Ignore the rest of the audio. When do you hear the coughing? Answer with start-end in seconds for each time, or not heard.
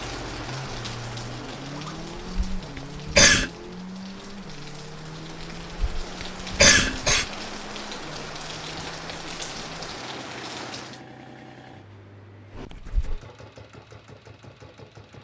2.5-3.5, 5.7-7.2, 12.5-13.2.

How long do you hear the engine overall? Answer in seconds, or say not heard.
15 s.